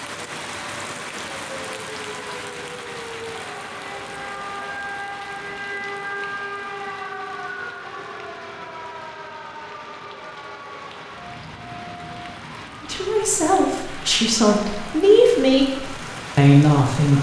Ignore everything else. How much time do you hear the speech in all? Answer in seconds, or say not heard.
4 s.